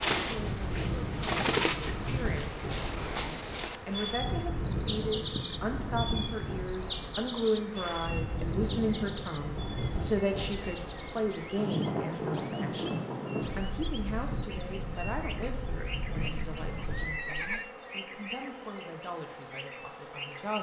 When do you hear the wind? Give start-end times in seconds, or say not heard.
0.2-17.2.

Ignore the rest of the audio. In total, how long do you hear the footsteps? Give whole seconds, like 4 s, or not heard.
not heard.